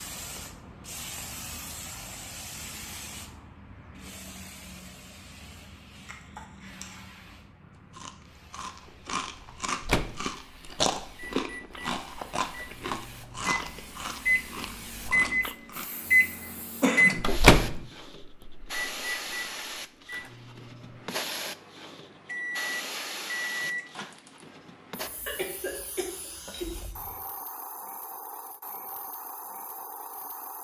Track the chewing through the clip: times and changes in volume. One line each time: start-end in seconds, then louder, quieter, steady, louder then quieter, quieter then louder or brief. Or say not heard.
7.7-15.9 louder then quieter.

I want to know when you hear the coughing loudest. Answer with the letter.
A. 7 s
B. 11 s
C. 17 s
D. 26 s
C.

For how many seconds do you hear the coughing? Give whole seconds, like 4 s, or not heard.
3 s.